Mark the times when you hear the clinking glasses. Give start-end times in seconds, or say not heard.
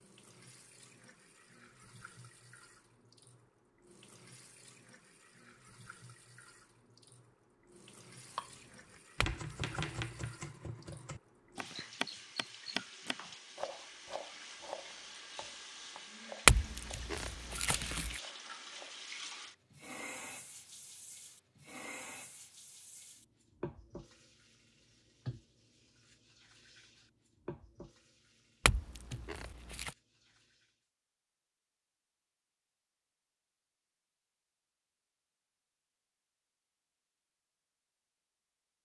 9.2-10.3, 16.4-18.2, 28.6-29.9.